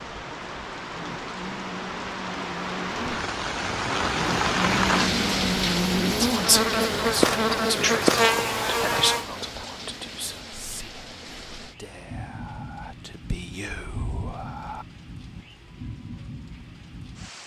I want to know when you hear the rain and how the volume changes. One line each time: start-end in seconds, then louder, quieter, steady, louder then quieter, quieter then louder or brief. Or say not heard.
0.0-17.4 louder then quieter.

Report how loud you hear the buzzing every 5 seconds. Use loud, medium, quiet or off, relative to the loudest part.
medium, loud, off, off.